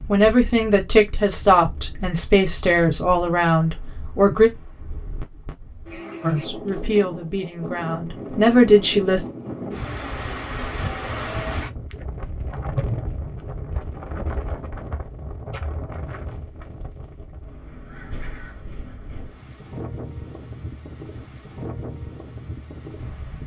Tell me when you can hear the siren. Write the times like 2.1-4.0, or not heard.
not heard.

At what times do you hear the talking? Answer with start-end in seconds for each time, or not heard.
0.1-4.5, 6.2-9.2.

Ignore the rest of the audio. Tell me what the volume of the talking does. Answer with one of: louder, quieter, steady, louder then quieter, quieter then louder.
quieter then louder.